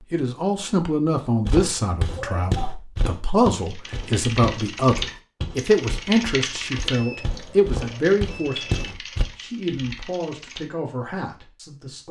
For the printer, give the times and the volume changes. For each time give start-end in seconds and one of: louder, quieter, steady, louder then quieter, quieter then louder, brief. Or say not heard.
not heard.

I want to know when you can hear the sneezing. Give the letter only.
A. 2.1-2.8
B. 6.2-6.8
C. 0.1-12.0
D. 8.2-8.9
A.